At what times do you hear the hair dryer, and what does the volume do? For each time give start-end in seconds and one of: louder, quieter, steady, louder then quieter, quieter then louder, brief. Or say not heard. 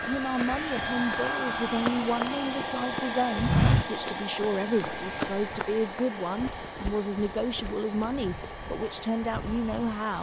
0.0-10.1 quieter.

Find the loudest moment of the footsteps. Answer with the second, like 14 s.
4 s.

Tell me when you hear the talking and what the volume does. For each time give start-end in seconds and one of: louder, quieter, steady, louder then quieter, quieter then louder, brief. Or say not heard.
0.0-10.1 steady.